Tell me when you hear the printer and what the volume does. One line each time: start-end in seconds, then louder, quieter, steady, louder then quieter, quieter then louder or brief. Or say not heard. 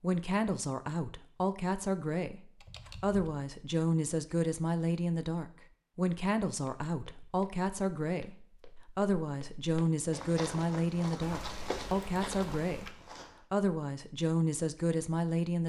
not heard.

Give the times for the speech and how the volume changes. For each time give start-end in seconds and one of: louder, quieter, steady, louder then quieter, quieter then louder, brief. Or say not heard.
0.0-15.6 steady.